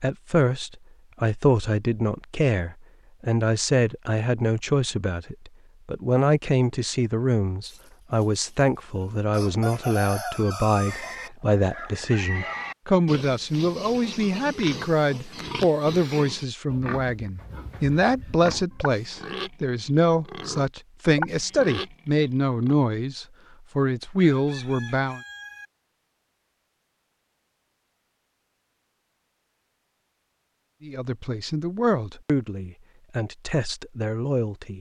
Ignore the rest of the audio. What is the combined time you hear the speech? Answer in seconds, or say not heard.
29 s.